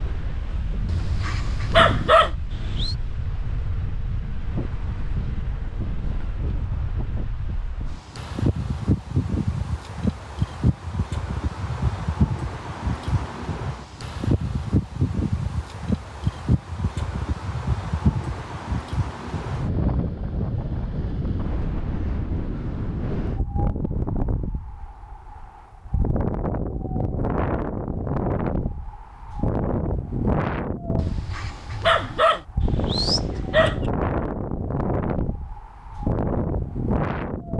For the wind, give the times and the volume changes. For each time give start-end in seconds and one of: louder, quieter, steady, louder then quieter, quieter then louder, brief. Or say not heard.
0.0-37.5 louder.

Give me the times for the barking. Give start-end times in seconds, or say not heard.
0.8-3.0, 30.9-33.8.